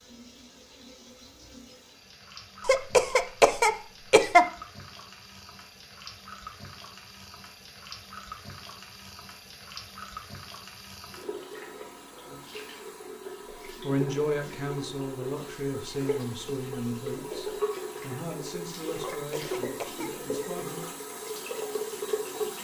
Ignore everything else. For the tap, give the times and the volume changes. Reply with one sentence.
You can hear the tap from 0.0 to 22.5 s, getting louder.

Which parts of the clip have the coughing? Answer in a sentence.
The coughing can be heard from 2.6 to 4.5 s and from 19.1 to 20.1 s.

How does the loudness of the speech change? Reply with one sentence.
The loudness of the speech goes down.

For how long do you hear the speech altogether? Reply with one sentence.
You can hear the speech for 7 seconds altogether.